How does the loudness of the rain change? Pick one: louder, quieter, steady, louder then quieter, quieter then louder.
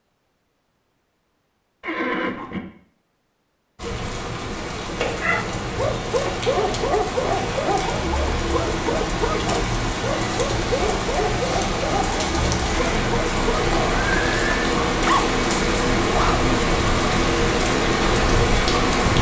louder.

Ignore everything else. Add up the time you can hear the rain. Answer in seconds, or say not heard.
15 s.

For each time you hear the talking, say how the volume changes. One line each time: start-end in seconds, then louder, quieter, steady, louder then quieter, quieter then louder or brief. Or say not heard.
not heard.